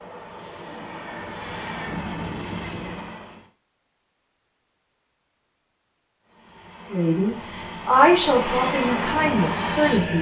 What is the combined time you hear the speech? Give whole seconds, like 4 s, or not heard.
3 s.